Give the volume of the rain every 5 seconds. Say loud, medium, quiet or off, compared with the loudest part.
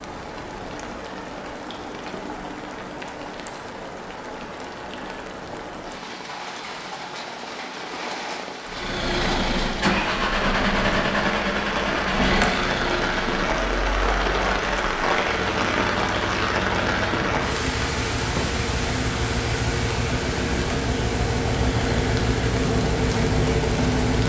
medium, medium, loud, loud, medium.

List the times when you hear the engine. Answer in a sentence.
You can hear the engine from 8.7 to 24.2 s.